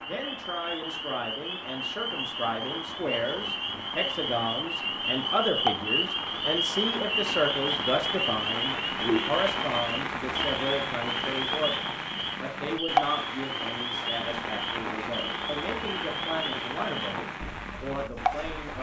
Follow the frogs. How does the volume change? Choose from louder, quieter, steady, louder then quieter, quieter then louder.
louder then quieter.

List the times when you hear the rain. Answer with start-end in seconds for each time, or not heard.
0.0-18.7.